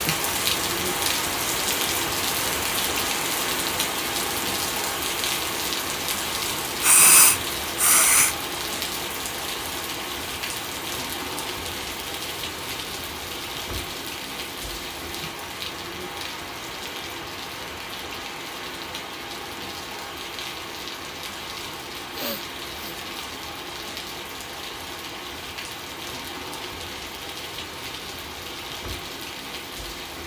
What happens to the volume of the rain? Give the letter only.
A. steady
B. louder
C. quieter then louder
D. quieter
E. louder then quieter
D.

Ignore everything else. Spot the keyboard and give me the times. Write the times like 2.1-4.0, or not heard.
not heard.